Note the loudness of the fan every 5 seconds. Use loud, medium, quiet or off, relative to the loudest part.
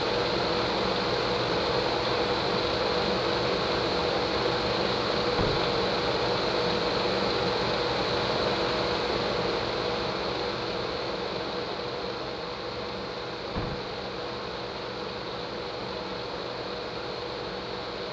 loud, loud, medium, medium.